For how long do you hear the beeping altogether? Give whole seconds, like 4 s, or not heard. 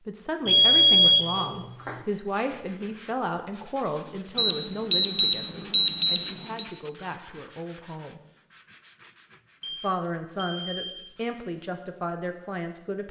5 s.